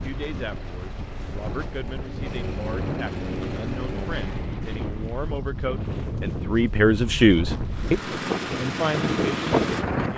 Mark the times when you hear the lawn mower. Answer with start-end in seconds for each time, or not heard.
0.0-4.7, 7.7-10.1.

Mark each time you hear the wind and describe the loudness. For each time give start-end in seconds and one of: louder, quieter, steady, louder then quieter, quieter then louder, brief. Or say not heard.
0.0-10.1 louder.